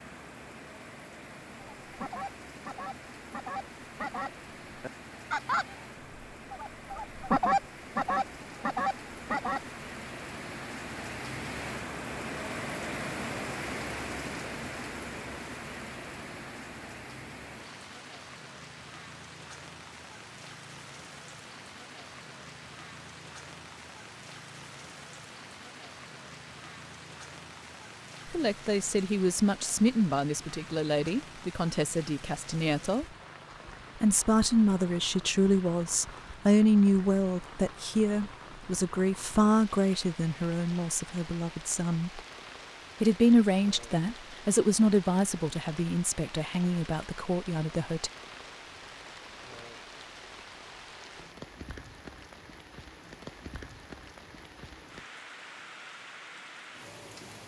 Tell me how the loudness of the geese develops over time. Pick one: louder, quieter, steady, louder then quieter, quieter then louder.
louder.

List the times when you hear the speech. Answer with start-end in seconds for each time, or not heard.
28.2-33.0, 34.0-42.2, 43.0-48.1.